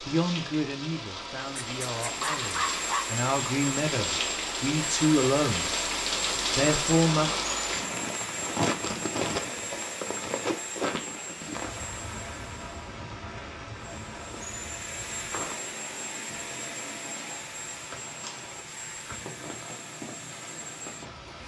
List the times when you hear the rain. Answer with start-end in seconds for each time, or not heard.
0.0-21.4.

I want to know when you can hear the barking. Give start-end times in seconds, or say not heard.
1.6-3.1.